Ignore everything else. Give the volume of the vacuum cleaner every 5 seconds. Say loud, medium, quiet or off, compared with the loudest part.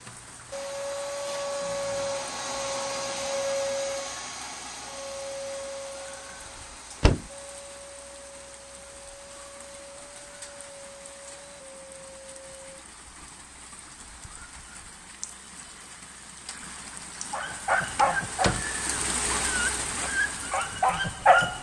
loud, medium, quiet, off, off.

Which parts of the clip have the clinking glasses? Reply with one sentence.
The clinking glasses can't be heard in this clip.